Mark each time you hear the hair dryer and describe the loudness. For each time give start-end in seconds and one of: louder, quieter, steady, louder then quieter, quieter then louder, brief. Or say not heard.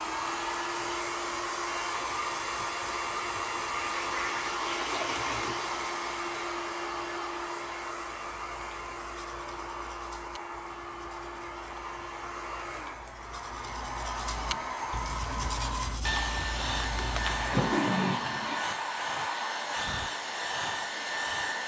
0.0-21.6 quieter then louder.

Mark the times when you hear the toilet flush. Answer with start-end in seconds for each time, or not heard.
3.8-5.6, 17.1-18.6.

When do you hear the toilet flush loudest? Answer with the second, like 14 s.
18 s.